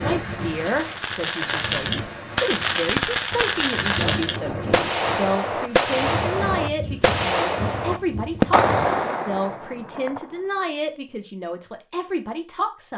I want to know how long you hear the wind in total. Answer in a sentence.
The wind can be heard for 9 seconds in total.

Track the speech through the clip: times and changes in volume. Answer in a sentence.
The speech can be heard from 0.0 to 12.9 s, at a steady volume.